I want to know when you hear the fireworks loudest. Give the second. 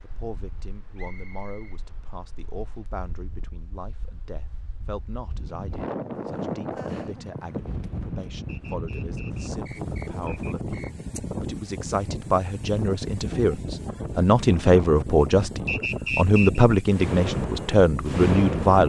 18 s.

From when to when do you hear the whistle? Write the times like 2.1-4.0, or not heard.
0.9-1.8, 8.4-11.1, 15.7-16.6.